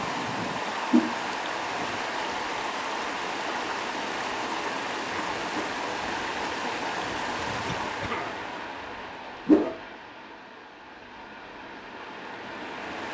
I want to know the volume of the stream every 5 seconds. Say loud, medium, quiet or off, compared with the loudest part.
loud, loud, medium.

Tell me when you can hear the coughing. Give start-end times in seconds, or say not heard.
7.7-8.4.